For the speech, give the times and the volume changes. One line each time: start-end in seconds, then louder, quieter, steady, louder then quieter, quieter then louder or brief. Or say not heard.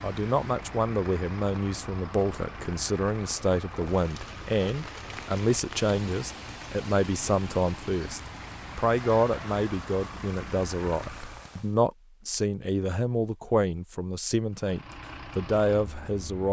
0.0-16.4 steady.